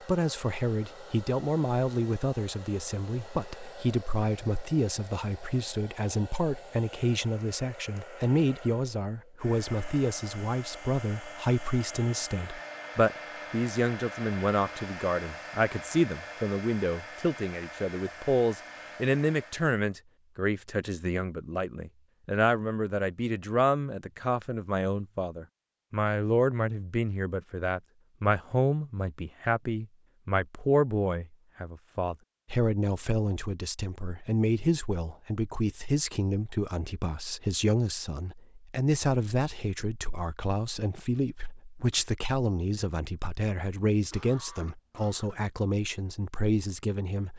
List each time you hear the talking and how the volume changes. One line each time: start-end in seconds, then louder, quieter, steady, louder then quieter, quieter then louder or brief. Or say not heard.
0.1-47.3 steady.